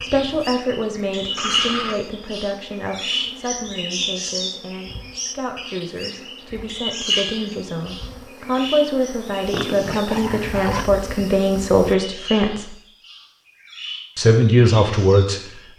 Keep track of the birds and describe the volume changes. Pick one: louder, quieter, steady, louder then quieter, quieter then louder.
quieter.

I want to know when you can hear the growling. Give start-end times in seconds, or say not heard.
1.4-2.0, 9.5-10.9.